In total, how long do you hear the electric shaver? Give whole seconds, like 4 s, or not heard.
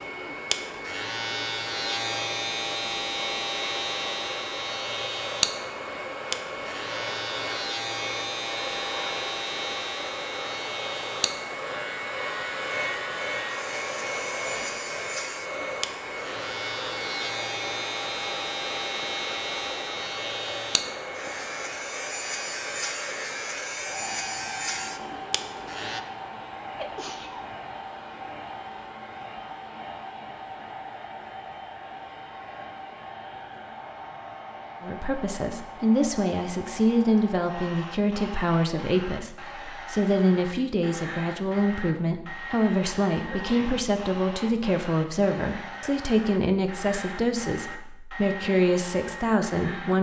26 s.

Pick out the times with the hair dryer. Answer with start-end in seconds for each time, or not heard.
0.0-49.9.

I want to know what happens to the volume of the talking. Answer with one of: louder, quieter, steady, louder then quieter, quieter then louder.
steady.